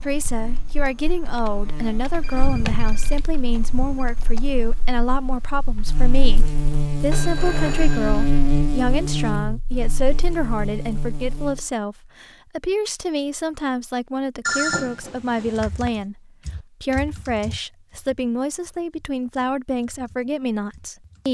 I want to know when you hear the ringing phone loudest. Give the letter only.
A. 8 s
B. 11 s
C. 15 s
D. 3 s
C.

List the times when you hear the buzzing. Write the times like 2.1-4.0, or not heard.
0.2-11.7.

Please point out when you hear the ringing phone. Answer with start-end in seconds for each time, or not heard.
2.1-4.0, 7.1-8.4, 14.4-15.9.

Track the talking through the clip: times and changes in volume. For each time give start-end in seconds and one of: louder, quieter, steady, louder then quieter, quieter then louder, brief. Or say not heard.
0.0-21.2 steady.